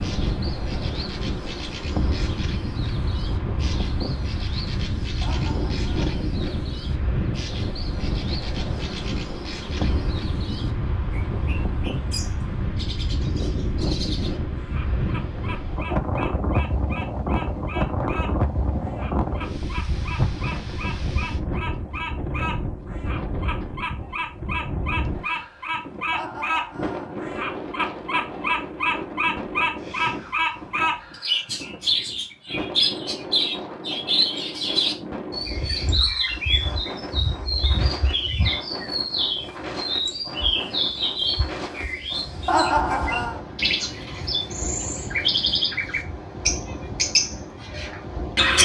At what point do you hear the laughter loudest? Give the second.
43 s.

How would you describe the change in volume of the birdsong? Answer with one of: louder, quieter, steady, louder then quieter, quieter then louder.
louder.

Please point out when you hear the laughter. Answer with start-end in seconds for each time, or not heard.
5.2-6.2, 26.1-27.1, 42.5-43.4.